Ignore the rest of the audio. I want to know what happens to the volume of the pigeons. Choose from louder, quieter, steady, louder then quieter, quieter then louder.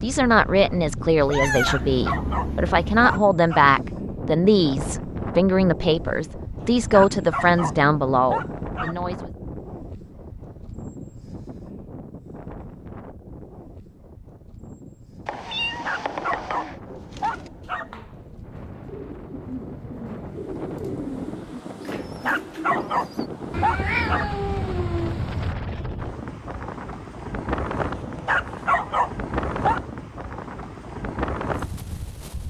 louder.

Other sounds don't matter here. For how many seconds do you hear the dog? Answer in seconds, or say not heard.
11 s.